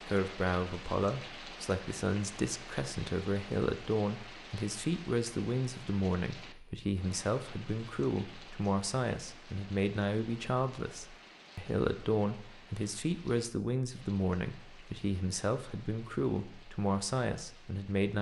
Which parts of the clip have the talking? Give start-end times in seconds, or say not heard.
0.0-18.1.